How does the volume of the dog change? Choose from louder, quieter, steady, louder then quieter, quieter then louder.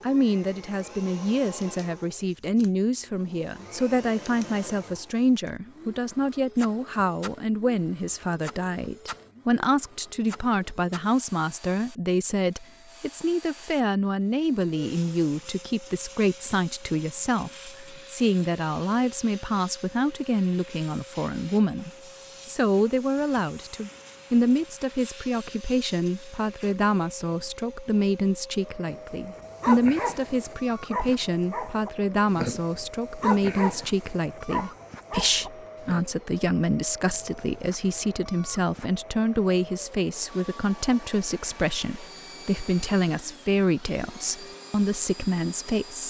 steady.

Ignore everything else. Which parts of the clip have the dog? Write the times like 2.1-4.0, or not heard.
28.9-36.0.